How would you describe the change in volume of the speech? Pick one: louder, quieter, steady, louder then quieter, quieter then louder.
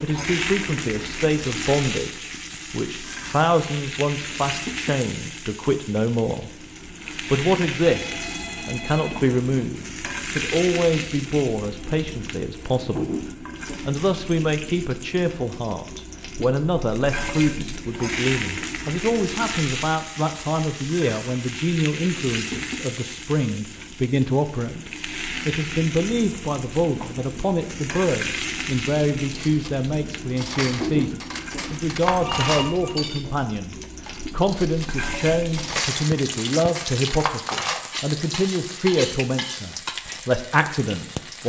steady.